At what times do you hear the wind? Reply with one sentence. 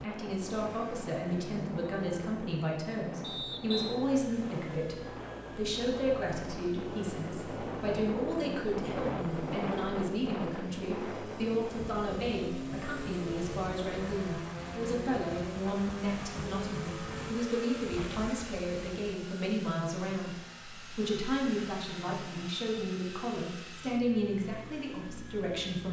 You can hear the wind from 0.0 to 19.0 s.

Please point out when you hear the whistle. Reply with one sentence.
The whistle can be heard from 3.2 to 4.0 s.